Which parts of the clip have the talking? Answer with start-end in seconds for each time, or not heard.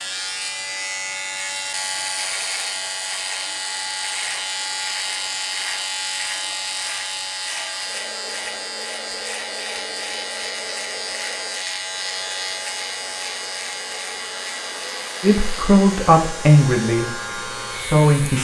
15.2-18.4.